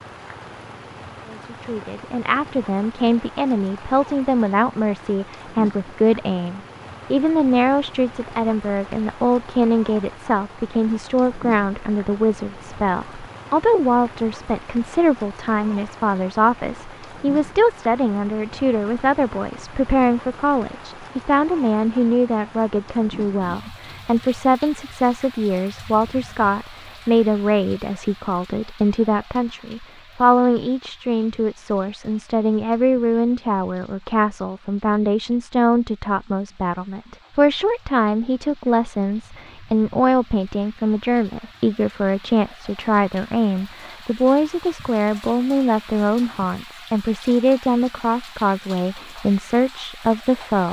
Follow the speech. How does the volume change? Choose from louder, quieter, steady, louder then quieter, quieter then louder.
steady.